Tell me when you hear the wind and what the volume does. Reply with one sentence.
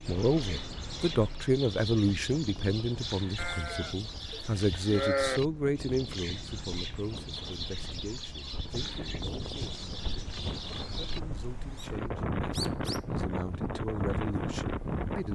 You can hear the wind from 0.0 to 15.3 s, getting louder.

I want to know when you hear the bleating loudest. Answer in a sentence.
The volume of the bleating peaks at 5 seconds.